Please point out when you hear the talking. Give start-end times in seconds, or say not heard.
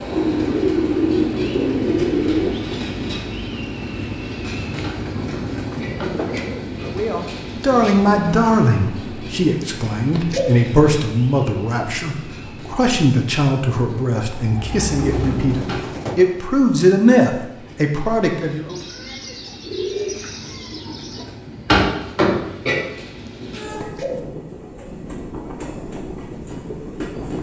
6.8-18.8.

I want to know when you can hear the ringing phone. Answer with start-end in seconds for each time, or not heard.
not heard.